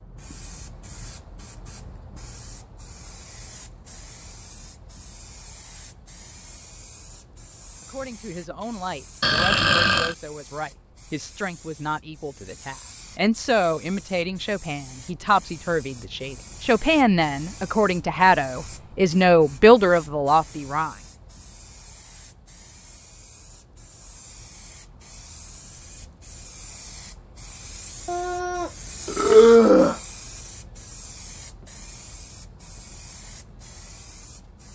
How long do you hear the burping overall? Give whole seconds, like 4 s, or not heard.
3 s.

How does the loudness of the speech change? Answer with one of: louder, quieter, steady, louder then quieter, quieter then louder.
louder.